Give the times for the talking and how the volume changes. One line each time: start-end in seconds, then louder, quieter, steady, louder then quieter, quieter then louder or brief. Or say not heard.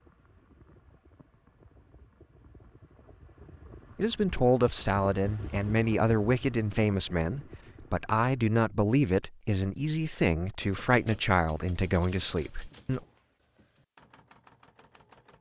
4.0-13.0 steady.